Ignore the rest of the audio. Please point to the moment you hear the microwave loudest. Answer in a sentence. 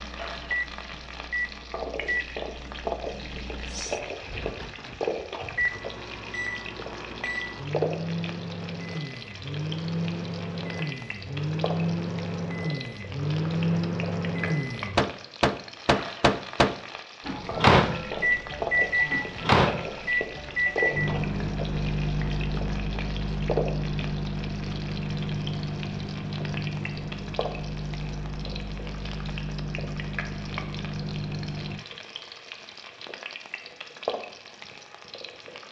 The loudest moment of the microwave is at 18 seconds.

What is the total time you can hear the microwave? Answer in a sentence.
You can hear the microwave for 32 seconds altogether.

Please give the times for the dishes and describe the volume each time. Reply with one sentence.
The dishes can't be heard in this clip.